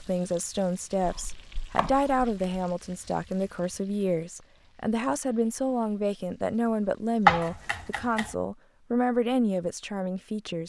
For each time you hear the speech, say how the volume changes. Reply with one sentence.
You can hear the speech from 0.0 to 10.6 s, at a steady volume.